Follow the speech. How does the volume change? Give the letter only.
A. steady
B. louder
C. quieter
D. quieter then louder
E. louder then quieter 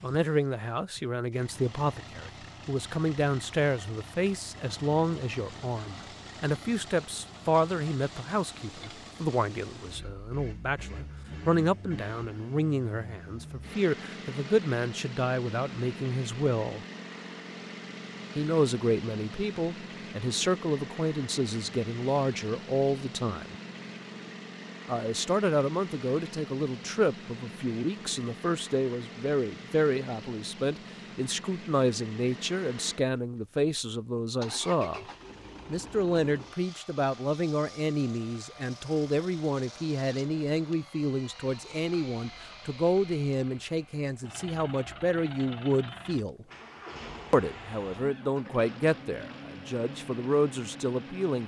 A.